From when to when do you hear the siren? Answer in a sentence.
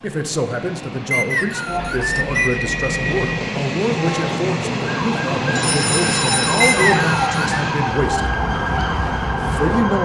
You can hear the siren from 4.8 to 9.9 s.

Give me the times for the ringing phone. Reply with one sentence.
The ringing phone can be heard from 1.6 to 3.5 s and from 5.5 to 7.0 s.